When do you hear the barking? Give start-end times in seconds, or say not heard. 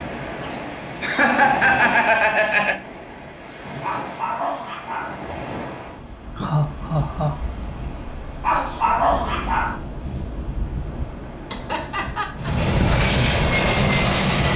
3.8-5.2, 8.4-9.8.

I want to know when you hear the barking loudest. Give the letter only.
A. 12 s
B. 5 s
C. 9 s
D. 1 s
C.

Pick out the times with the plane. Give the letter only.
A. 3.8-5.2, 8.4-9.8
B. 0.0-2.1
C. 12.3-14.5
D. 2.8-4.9
C.